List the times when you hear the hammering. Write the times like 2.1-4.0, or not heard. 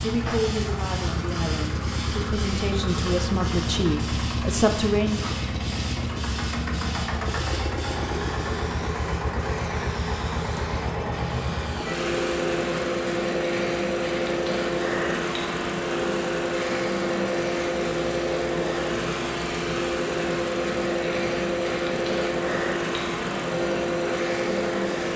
not heard.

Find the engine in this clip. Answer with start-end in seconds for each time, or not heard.
0.0-25.1.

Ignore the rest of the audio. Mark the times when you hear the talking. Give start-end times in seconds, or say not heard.
0.0-5.2.